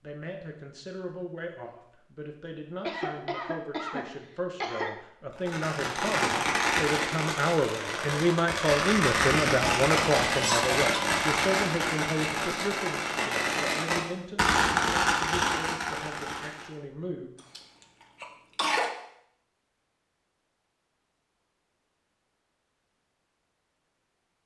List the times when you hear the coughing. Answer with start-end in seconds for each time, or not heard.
2.8-5.0, 9.4-11.2, 18.2-18.9.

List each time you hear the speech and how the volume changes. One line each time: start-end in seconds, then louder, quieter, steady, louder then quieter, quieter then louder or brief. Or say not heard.
0.0-17.3 louder then quieter.